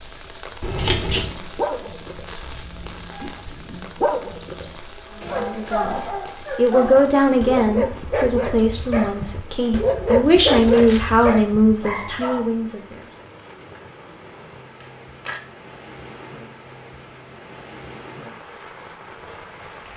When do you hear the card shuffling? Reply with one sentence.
You can hear the card shuffling from 0.6 to 1.4 s, from 10.4 to 11.2 s and from 14.8 to 15.4 s.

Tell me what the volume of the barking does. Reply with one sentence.
The volume of the barking goes up.